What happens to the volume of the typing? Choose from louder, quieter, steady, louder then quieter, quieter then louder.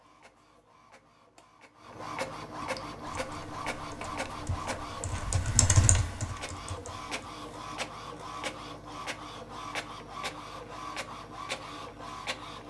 louder then quieter.